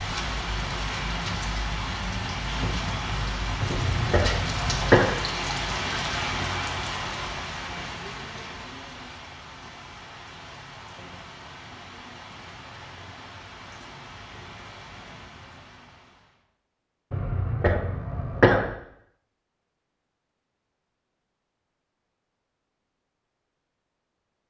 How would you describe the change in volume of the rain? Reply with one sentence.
The loudness of the rain goes down.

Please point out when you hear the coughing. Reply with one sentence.
You can hear the coughing from 3.6 to 5.0 s and from 17.1 to 18.7 s.